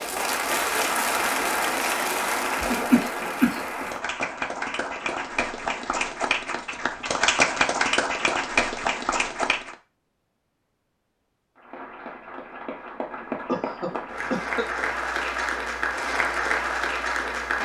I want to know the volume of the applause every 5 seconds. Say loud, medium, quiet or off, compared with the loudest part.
loud, loud, medium, loud.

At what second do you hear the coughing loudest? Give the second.
3 s.